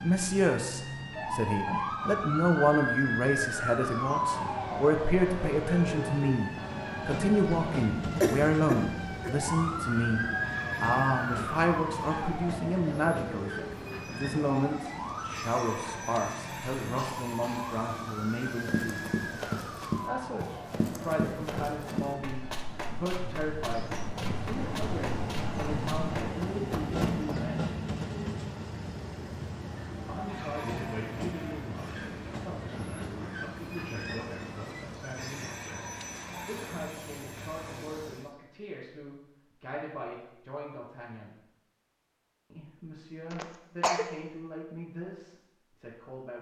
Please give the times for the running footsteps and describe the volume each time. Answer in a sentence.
The running footsteps can be heard from 18.6 to 27.4 s, getting quieter.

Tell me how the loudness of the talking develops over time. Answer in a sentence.
The volume of the talking goes down.